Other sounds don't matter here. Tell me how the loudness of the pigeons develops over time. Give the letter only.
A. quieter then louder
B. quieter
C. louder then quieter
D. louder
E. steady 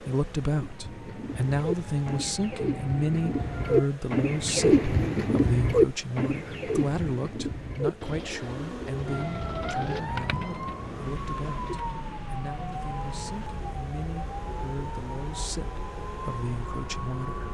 C.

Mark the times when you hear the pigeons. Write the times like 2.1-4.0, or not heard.
0.5-12.2.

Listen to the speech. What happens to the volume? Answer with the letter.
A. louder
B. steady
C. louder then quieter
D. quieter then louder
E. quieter
E.